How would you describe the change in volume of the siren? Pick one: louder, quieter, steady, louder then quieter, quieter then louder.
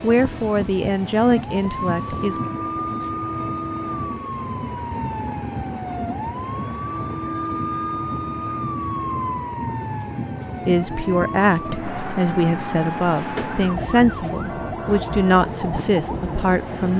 steady.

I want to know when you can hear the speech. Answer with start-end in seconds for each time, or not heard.
0.0-2.4, 10.7-16.9.